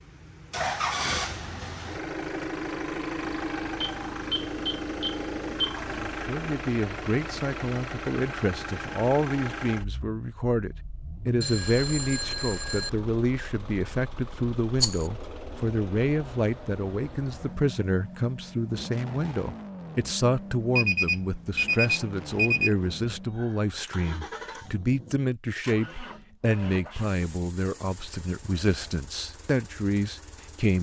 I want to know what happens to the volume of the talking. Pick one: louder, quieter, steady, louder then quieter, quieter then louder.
steady.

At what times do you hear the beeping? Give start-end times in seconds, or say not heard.
3.8-5.8, 11.4-12.9, 20.8-22.8.